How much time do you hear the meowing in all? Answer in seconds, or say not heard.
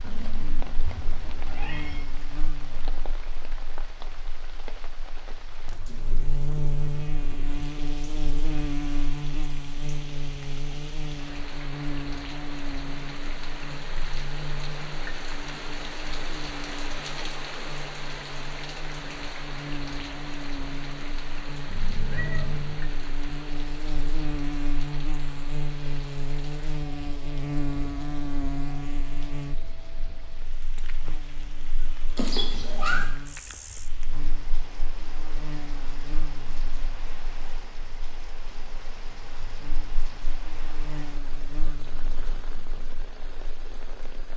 4 s.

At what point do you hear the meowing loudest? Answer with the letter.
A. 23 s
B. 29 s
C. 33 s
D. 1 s
C.